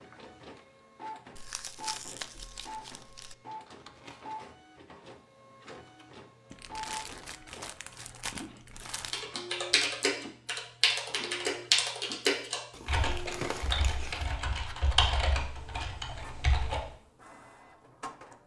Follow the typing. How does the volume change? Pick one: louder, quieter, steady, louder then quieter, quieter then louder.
quieter.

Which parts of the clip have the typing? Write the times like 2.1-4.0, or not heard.
9.1-16.9.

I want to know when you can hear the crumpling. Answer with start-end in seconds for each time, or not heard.
1.4-3.4, 6.5-9.2, 12.7-14.3.